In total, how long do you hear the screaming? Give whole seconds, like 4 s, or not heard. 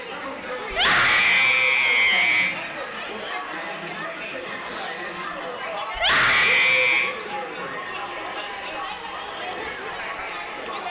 3 s.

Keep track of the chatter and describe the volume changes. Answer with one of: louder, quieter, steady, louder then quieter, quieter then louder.
steady.